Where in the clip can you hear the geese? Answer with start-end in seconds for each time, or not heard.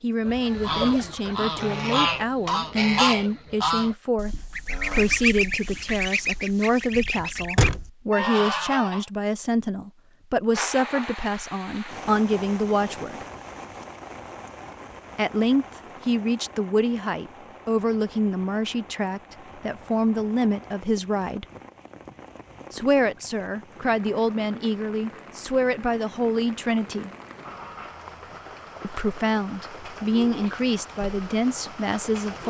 0.2-9.1.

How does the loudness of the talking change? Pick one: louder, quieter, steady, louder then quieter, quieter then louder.
steady.